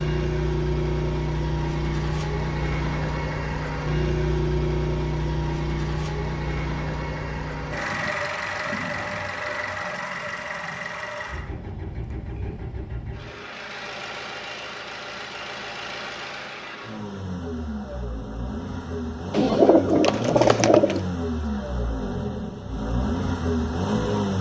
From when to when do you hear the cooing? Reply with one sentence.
You can hear the cooing from 19.3 to 21.0 s.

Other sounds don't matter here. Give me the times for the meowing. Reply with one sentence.
You can't hear the meowing here.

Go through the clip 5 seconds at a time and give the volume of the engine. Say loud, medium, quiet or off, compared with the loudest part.
loud, loud, medium, medium, loud.